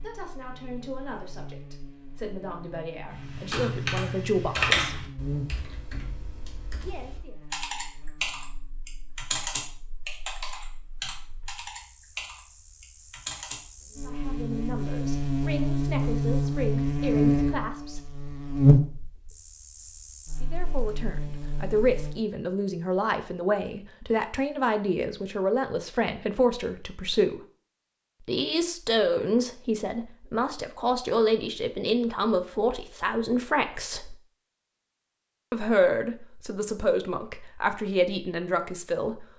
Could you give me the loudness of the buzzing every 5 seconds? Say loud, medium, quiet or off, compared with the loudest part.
quiet, quiet, quiet, loud, quiet, off, off, off.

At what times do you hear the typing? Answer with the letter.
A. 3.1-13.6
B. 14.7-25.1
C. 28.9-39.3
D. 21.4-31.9
A.